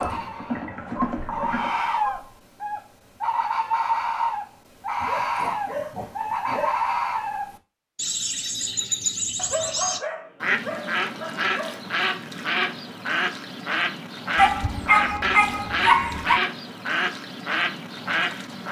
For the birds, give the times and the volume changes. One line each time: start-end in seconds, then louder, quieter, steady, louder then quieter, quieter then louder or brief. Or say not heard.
0.0-18.6 steady.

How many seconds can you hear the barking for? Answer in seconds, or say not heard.
8 s.